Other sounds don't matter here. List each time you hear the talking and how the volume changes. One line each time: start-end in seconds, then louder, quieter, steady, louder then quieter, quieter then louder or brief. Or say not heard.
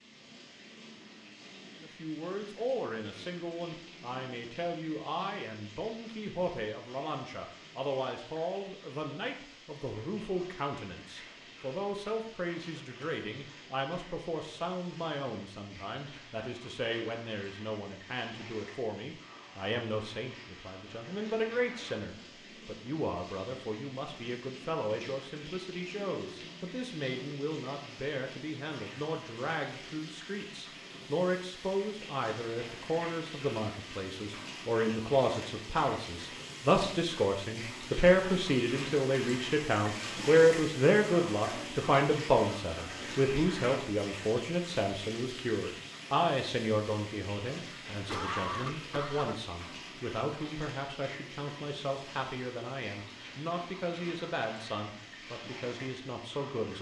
1.8-56.7 louder then quieter.